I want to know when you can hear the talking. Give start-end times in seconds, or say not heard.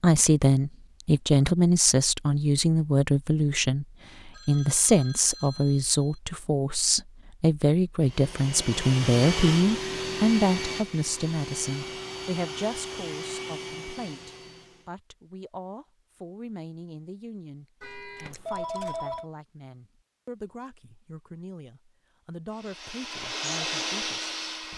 0.0-24.7.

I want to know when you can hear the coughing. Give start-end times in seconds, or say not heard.
not heard.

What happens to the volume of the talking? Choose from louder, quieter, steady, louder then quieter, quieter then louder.
quieter.